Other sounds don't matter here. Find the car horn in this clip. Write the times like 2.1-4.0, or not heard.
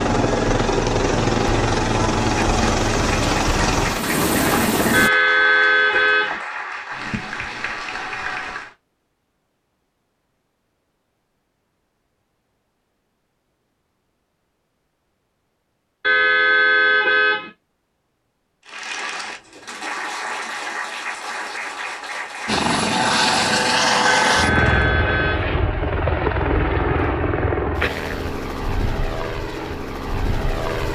4.9-6.4, 16.0-17.5, 24.0-25.5.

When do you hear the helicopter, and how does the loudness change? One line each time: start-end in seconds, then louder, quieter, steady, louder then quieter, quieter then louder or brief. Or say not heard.
0.0-5.1 steady
22.4-30.9 quieter.